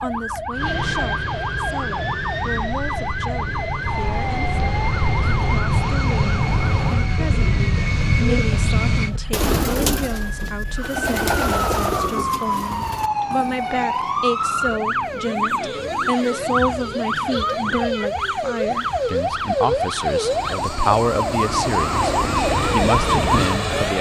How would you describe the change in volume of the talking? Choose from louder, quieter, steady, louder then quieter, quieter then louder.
louder.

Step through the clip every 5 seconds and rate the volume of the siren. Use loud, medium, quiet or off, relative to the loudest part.
medium, medium, loud, loud, loud.